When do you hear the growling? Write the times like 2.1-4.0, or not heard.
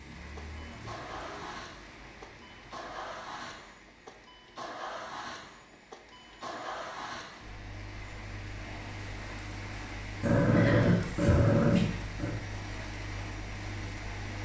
10.2-12.3.